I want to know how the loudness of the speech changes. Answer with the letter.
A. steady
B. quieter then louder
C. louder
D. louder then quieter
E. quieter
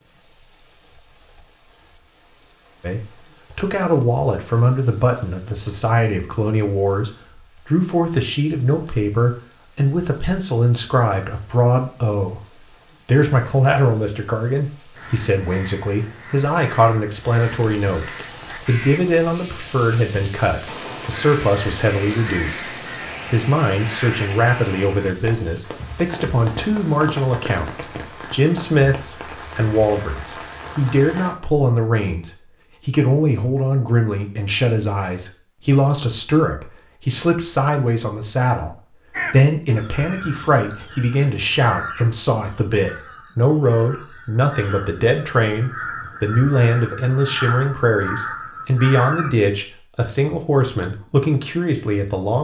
A.